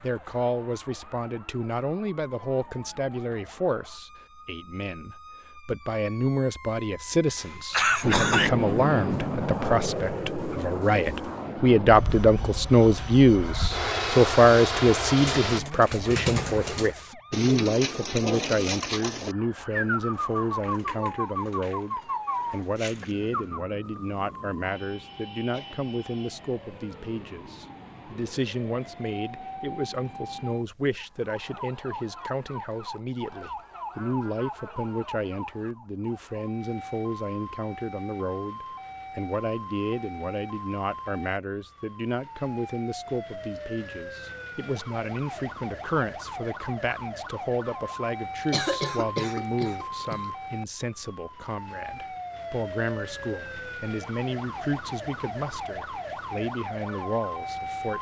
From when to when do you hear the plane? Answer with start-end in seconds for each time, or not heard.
8.0-15.6.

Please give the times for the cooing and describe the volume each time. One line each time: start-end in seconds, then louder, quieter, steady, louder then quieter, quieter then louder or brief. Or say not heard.
15.1-23.6 steady.